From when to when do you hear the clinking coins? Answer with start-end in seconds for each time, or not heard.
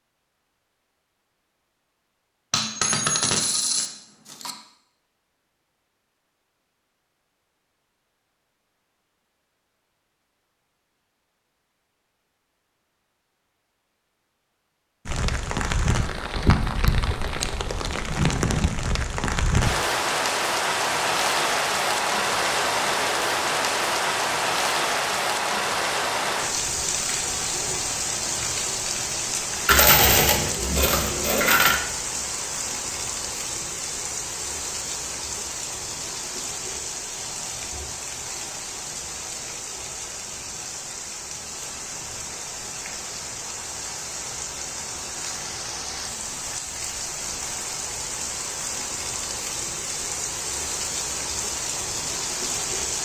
2.5-4.5, 29.6-31.8.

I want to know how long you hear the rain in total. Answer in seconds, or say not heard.
38 s.